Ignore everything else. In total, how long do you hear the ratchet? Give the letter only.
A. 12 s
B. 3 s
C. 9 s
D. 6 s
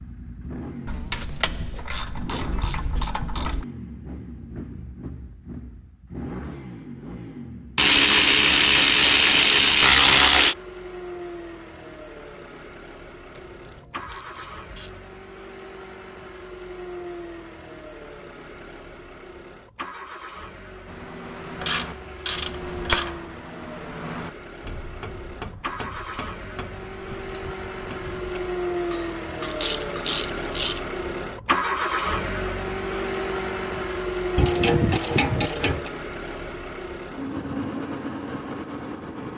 A.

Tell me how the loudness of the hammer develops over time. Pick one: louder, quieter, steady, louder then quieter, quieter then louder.
louder then quieter.